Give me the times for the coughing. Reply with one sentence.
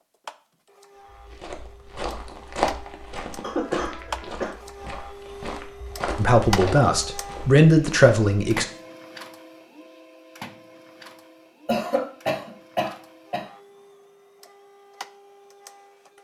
You can hear the coughing from 3.4 to 4.5 s and from 11.7 to 13.4 s.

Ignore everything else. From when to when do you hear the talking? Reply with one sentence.
The talking can be heard from 6.2 to 8.7 s.